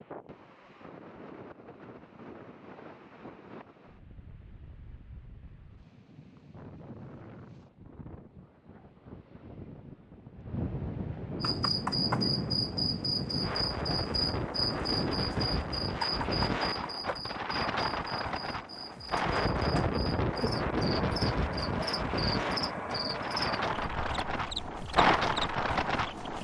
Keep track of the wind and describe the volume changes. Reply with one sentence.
The volume of the wind goes up.